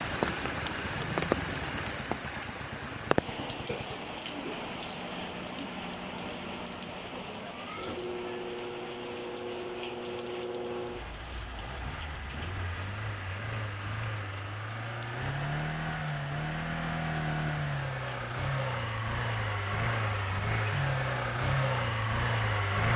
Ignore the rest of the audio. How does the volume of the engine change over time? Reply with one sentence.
The volume of the engine goes up.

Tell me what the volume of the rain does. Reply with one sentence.
The volume of the rain goes down.